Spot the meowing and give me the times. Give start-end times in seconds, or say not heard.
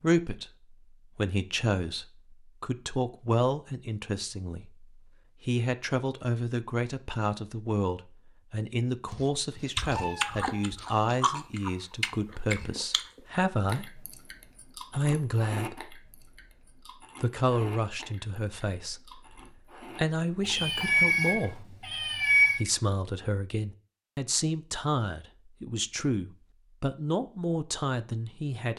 9.1-10.8, 20.4-22.6.